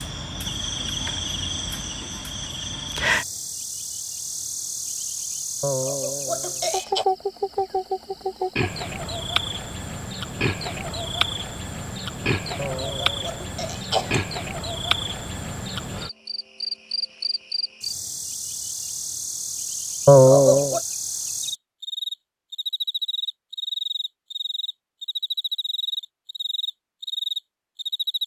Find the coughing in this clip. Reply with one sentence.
You can hear the coughing from 5.6 to 7.0 s, from 12.6 to 14.2 s and from 20.1 to 20.8 s.